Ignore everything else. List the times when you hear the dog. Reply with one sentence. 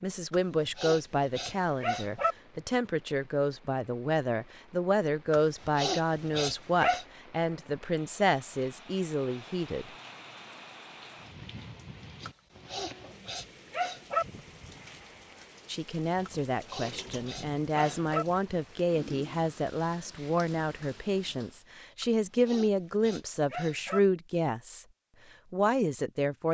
The dog can be heard from 0.3 to 2.4 s, from 5.3 to 7.0 s, from 12.2 to 14.2 s, from 16.2 to 18.2 s and from 22.0 to 24.0 s.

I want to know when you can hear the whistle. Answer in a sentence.
The whistle can't be heard in this clip.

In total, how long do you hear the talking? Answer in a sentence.
You can hear the talking for 20 seconds altogether.